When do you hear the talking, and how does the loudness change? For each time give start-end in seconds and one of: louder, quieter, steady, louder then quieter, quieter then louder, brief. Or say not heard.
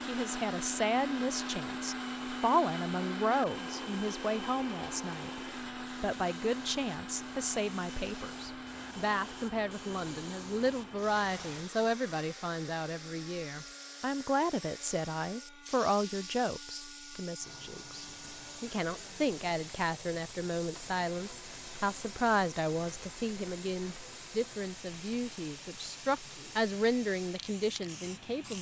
0.0-28.5 steady.